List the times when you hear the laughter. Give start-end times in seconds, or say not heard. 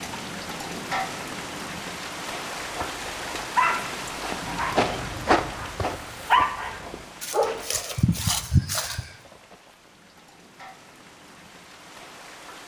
not heard.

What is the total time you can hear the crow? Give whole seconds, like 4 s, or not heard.
not heard.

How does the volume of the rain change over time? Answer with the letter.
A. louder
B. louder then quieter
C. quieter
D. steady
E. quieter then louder
C.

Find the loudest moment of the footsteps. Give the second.
5 s.